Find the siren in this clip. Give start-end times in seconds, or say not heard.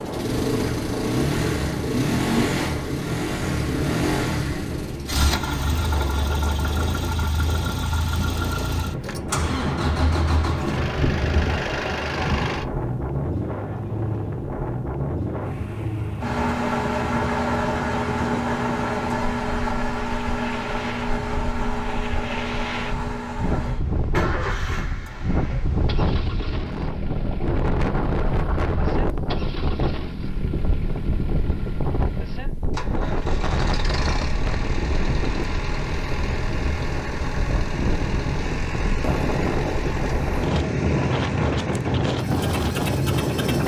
not heard.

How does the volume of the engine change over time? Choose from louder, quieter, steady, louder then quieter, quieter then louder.
quieter.